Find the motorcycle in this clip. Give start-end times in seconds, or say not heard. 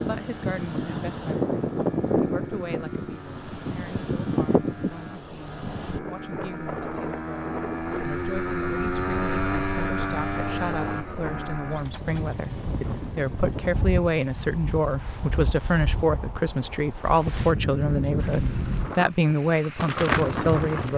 0.0-16.1.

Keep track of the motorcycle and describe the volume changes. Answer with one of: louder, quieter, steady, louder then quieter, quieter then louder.
louder then quieter.